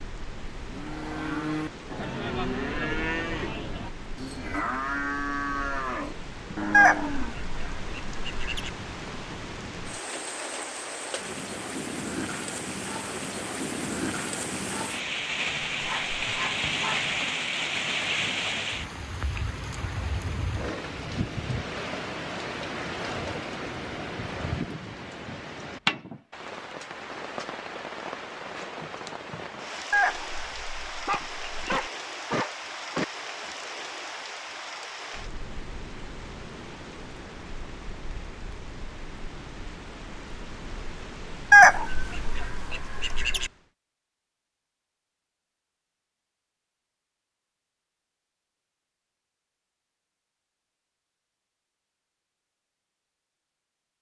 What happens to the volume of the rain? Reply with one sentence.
The volume of the rain goes up, then down.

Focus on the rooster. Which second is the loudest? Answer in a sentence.
The volume of the rooster peaks at 42 seconds.